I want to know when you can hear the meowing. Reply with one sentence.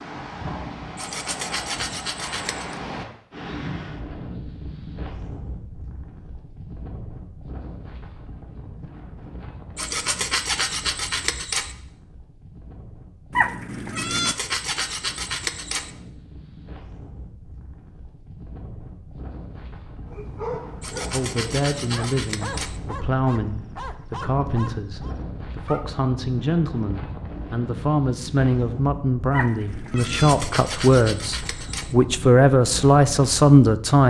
You can hear the meowing from 13.3 to 14.3 s and from 29.3 to 30.4 s.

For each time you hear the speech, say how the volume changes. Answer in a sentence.
The speech can be heard from 21.1 to 34.0 s, getting louder.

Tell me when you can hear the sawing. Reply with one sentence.
You can hear the sawing from 0.9 to 2.8 s, from 9.8 to 11.8 s, from 13.9 to 15.9 s, from 20.8 to 22.8 s and from 29.9 to 31.9 s.